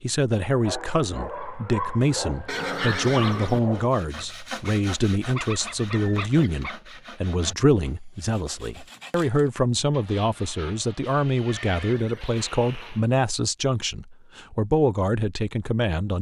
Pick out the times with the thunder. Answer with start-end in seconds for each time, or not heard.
not heard.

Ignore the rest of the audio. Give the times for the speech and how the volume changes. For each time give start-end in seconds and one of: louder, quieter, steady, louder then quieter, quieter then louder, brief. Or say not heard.
0.0-16.1 steady.